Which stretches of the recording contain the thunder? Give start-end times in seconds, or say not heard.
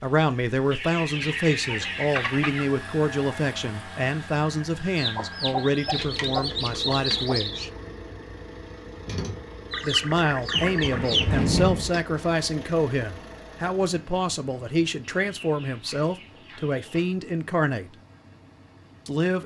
10.5-11.9.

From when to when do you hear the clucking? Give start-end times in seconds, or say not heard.
0.7-2.6, 5.0-7.7, 9.7-11.4, 15.0-17.1.